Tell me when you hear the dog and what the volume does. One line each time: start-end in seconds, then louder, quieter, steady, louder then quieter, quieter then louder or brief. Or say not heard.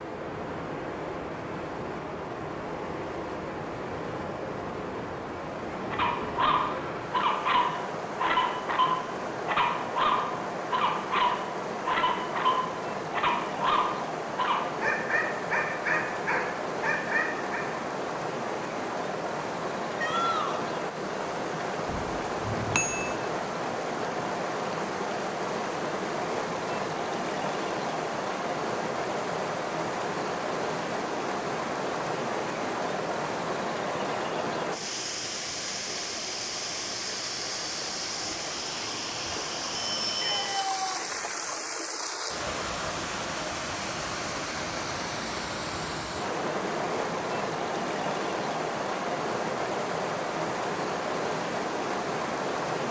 5.9-17.6 steady.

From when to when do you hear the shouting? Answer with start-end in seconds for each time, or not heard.
19.9-20.6, 40.1-41.0.